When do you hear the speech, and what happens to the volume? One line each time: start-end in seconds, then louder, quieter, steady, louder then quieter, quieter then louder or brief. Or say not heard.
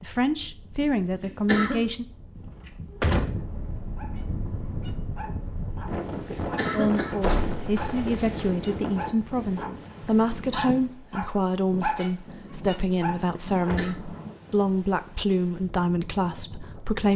0.0-2.0 brief
6.7-17.1 steady.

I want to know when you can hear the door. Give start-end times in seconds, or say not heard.
2.4-3.5, 7.2-8.9, 13.3-13.9.